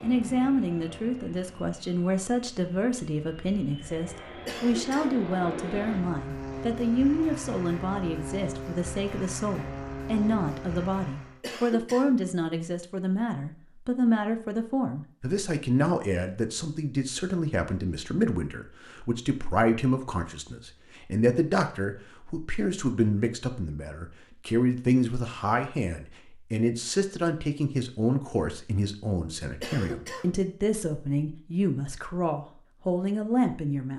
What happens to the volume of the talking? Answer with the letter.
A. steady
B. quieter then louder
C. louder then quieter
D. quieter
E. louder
A.